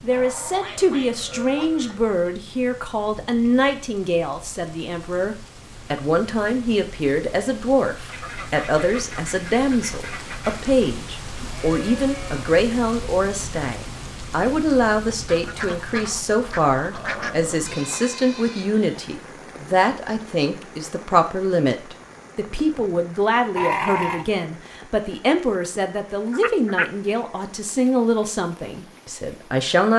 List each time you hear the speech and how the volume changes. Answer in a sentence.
The speech can be heard from 0.0 to 29.9 s, at a steady volume.